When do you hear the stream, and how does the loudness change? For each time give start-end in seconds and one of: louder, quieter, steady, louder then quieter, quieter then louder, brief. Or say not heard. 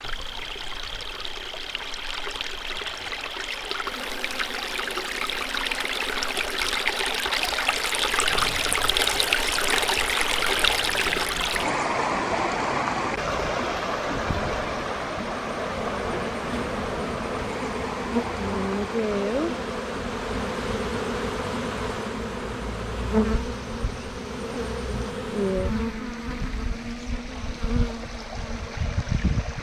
0.0-29.5 louder then quieter.